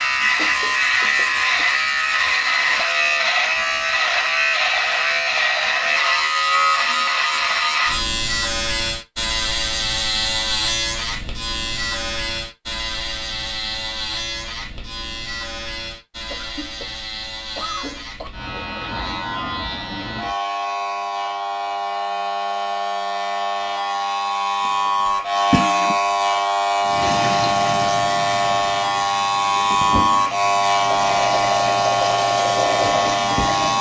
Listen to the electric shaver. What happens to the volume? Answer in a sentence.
The loudness of the electric shaver goes down, then up.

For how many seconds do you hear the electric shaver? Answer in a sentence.
You can hear the electric shaver for 34 seconds altogether.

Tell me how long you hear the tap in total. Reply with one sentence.
You can hear the tap for 7 seconds altogether.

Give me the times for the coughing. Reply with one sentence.
You can hear the coughing from 0.3 to 1.6 s, from 16.3 to 18.3 s and from 25.5 to 25.9 s.